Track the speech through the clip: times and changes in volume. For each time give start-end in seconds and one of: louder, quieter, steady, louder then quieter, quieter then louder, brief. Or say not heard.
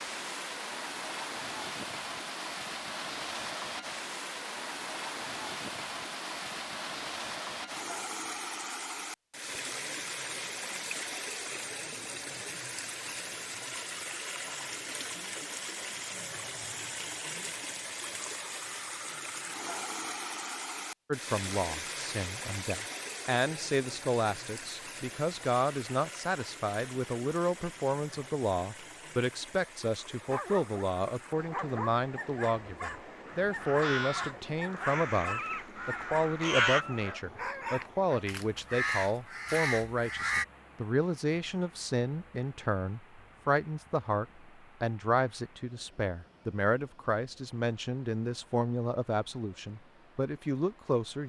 21.1-51.2 steady.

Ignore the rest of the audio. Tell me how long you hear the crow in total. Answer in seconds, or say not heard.
6 s.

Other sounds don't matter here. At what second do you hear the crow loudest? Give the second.
37 s.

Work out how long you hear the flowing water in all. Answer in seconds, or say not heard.
51 s.